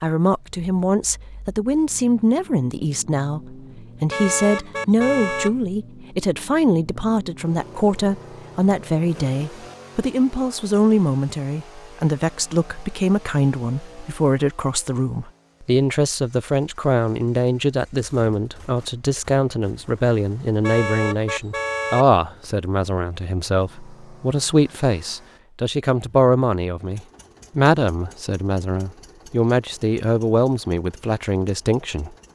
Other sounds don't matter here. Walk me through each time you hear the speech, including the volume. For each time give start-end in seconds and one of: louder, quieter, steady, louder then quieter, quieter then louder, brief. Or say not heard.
0.0-32.1 steady.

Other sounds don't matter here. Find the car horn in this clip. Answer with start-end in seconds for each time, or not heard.
4.1-5.5, 20.6-22.1.